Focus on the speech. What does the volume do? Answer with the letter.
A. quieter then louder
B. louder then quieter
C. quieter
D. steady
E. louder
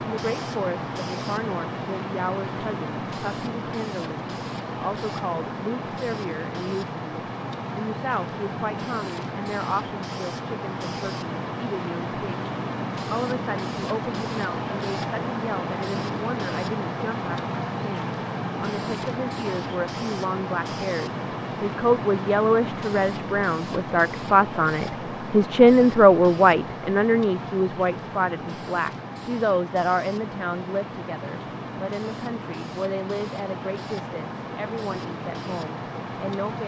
B.